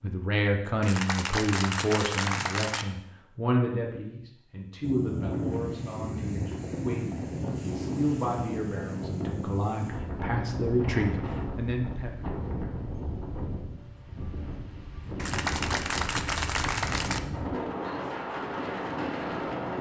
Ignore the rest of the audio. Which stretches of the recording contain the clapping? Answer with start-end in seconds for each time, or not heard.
0.8-2.9, 15.2-17.2.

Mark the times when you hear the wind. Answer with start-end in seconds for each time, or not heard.
4.8-19.7.